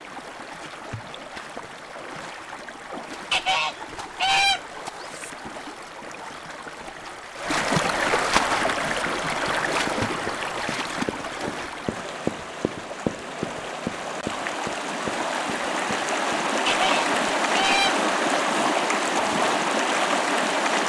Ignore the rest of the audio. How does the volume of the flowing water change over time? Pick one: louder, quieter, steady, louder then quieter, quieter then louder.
louder.